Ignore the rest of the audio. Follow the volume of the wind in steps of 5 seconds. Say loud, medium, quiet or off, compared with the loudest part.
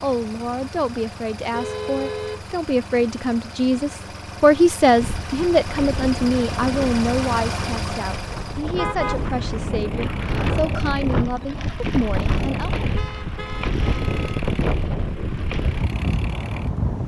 off, medium, loud, loud.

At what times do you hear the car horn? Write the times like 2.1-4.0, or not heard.
1.5-2.5, 8.8-9.2, 12.9-14.4.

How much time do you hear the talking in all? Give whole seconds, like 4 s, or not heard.
13 s.